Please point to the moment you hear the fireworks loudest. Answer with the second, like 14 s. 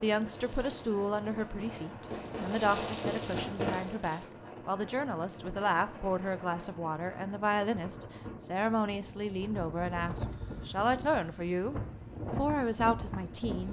4 s.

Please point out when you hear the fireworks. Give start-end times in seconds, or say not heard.
0.2-4.2.